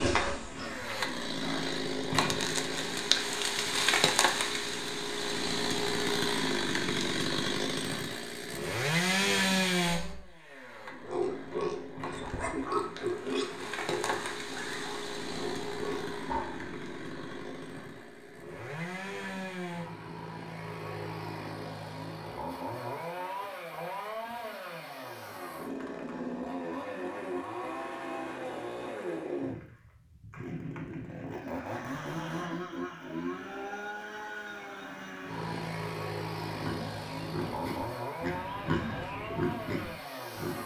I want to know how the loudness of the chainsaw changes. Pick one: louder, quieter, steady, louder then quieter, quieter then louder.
quieter.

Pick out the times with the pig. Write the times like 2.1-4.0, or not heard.
0.0-1.8, 11.0-16.7, 36.5-40.6.